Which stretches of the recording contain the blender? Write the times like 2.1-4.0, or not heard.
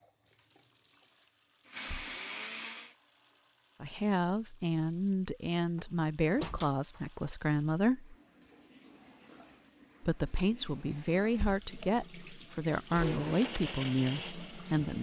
0.0-3.0, 12.9-14.9.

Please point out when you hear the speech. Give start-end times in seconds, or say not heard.
3.8-8.2, 10.0-14.9.